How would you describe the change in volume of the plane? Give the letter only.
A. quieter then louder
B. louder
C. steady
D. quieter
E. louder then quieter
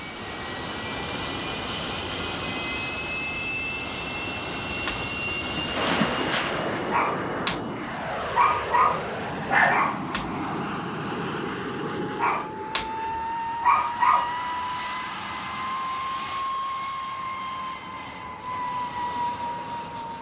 C.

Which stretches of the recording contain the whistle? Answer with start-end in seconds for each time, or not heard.
not heard.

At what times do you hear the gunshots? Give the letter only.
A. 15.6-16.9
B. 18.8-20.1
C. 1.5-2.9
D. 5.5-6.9
D.